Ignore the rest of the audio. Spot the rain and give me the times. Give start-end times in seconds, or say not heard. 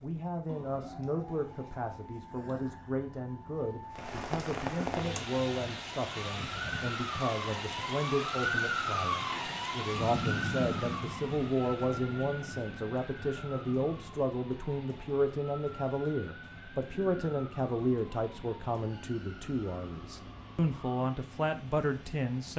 3.9-22.5.